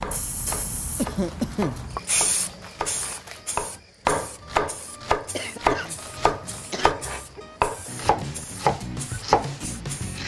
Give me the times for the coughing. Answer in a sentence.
You can hear the coughing from 0.9 to 1.8 s and from 5.3 to 6.9 s.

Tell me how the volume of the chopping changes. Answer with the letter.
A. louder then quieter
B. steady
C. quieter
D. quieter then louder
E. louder
E.